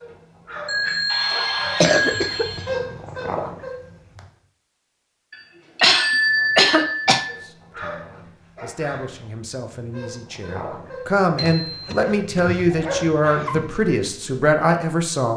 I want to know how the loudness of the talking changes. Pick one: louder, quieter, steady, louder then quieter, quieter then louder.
louder.